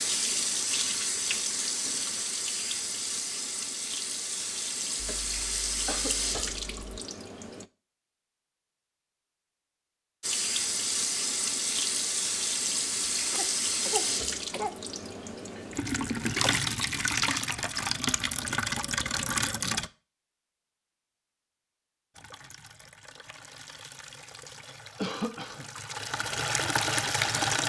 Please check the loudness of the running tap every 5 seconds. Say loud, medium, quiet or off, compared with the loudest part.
loud, loud, loud, loud, quiet, loud.